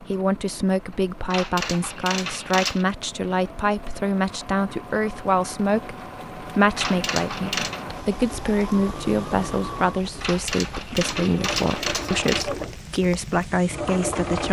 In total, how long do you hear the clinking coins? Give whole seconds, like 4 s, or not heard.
5 s.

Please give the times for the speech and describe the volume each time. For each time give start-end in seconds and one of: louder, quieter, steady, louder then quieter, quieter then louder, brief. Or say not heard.
0.0-14.4 steady.